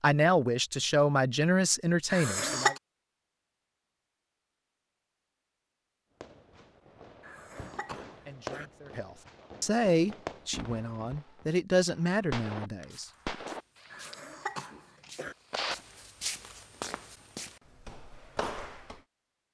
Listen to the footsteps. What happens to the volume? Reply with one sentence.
The loudness of the footsteps goes up.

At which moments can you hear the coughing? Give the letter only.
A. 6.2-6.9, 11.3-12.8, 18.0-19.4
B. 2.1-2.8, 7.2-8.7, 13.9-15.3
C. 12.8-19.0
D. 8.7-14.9
B.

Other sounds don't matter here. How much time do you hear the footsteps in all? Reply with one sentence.
The footsteps can be heard for 6 seconds in total.